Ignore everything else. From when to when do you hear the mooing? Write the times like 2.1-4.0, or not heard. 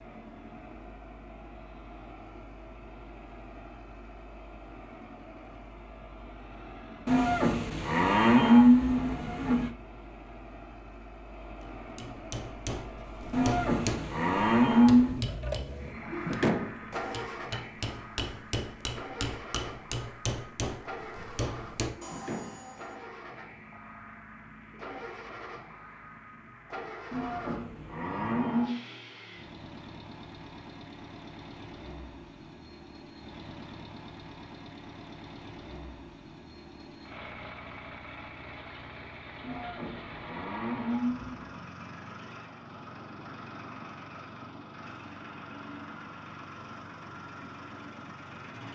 7.0-9.7, 13.3-15.2, 27.1-28.8, 39.4-41.5.